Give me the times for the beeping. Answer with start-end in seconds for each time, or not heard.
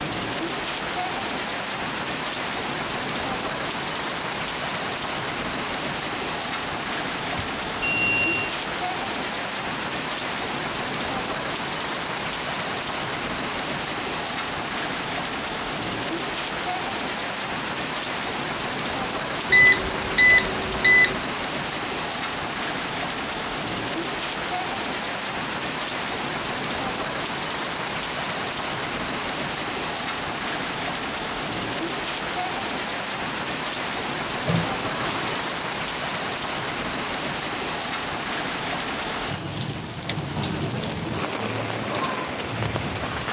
7.3-8.6, 19.5-21.2, 34.5-35.5.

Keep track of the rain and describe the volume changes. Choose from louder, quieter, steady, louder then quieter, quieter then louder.
steady.